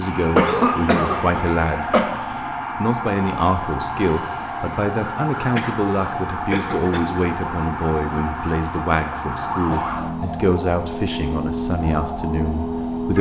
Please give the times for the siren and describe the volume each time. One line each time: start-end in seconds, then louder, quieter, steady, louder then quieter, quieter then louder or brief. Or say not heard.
0.0-13.1 steady.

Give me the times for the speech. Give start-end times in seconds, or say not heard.
0.0-2.0, 2.8-13.1.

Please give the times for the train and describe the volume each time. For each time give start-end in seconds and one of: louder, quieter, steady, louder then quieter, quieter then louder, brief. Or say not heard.
not heard.